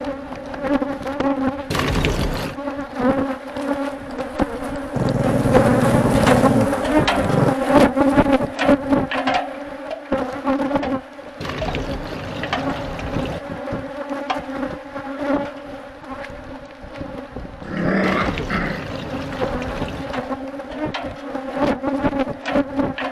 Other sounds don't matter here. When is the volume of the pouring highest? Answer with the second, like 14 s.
2 s.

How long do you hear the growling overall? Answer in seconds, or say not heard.
4 s.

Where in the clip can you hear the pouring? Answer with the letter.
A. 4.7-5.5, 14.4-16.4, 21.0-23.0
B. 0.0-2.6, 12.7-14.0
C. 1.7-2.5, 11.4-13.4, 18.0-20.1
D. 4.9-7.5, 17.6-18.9
C.